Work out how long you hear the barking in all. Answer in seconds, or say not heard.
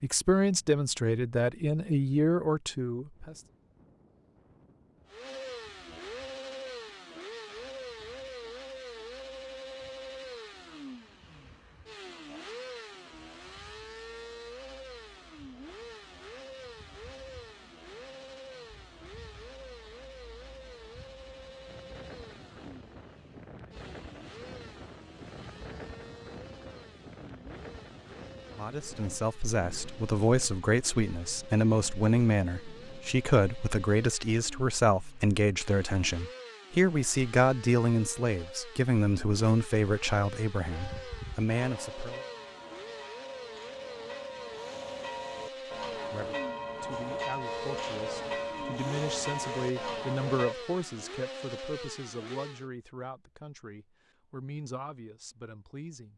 not heard.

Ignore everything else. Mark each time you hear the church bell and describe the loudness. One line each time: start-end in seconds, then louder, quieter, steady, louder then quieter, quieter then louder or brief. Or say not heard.
40.7-50.5 louder.